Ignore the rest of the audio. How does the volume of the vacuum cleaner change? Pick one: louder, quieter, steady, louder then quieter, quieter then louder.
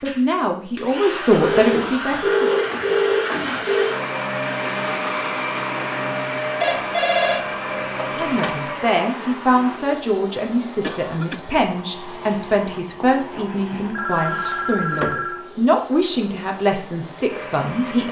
quieter.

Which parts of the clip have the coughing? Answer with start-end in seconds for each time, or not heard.
10.8-11.4.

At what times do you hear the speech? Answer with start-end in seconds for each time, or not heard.
0.0-2.5, 8.2-18.0.